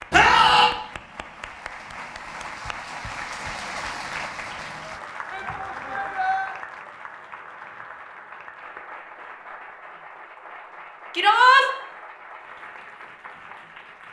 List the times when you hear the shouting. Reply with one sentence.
You can hear the shouting from 0.1 to 0.7 s, from 5.3 to 6.5 s and from 11.1 to 11.7 s.